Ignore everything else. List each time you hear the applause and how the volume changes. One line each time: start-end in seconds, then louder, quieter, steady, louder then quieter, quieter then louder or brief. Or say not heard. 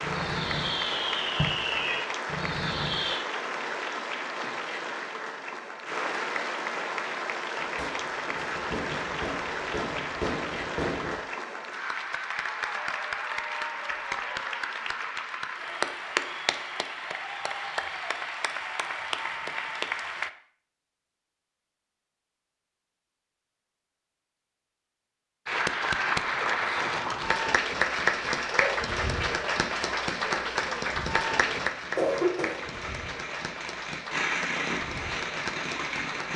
0.0-20.3 steady
25.4-36.3 quieter.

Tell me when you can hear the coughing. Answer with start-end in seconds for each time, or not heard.
31.4-32.8.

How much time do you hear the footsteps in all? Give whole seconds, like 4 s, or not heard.
not heard.